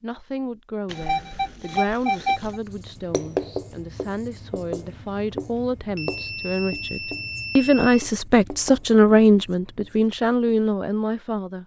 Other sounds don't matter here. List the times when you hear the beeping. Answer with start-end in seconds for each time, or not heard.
0.9-2.6, 6.0-8.1.